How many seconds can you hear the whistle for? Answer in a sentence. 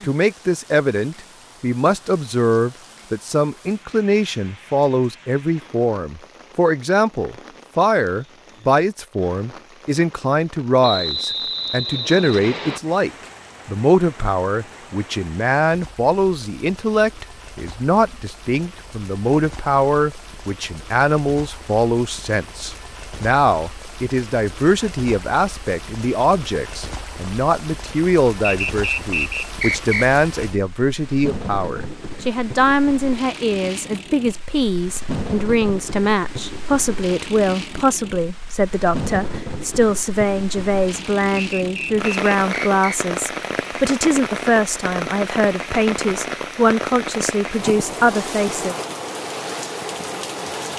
The whistle can be heard for 5 seconds in total.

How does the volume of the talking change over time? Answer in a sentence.
The volume of the talking stays about the same.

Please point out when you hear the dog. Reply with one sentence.
You can't hear the dog here.